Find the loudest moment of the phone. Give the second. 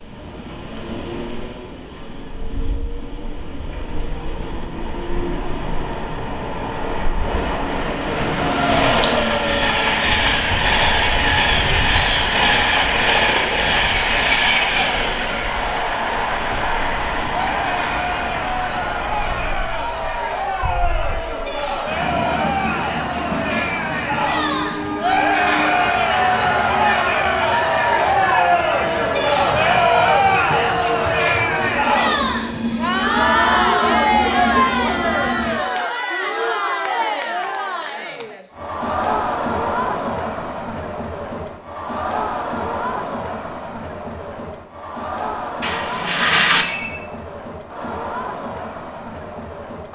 46 s.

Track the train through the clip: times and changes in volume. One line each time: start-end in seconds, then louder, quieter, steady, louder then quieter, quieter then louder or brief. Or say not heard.
0.0-35.6 louder then quieter.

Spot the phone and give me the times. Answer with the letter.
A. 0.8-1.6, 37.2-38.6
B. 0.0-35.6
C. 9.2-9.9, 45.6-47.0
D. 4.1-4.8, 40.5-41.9
C.